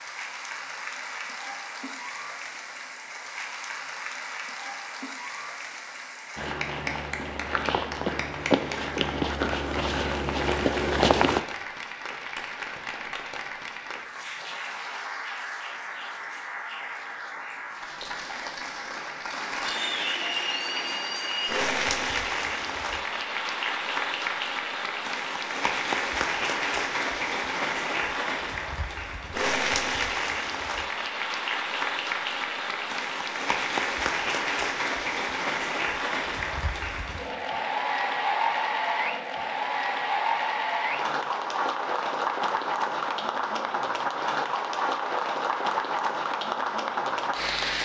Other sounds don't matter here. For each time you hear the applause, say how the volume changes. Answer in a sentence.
The applause can be heard from 0.0 to 47.8 s, getting louder.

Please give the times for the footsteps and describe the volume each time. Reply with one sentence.
The footsteps can be heard from 6.3 to 11.4 s, getting louder.